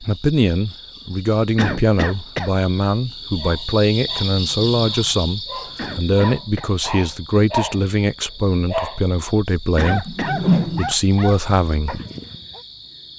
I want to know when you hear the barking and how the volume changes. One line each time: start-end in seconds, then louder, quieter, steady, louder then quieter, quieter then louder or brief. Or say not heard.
3.4-12.6 louder then quieter.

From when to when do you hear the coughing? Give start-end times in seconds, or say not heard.
1.6-2.5, 5.8-6.7, 9.8-10.3.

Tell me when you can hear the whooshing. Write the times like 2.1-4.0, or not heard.
10.1-10.9.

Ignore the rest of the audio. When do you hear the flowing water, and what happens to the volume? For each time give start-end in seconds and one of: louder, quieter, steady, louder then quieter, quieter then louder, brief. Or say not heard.
not heard.